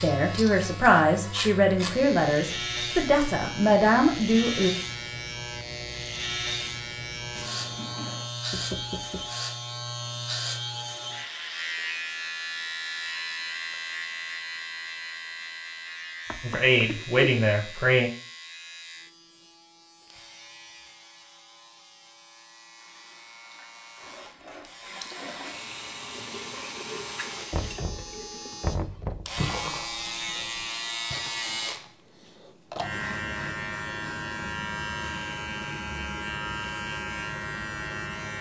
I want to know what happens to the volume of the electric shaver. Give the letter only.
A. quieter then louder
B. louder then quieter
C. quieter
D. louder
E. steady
A.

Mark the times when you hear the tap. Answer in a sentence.
The tap can be heard from 22.8 to 30.7 s.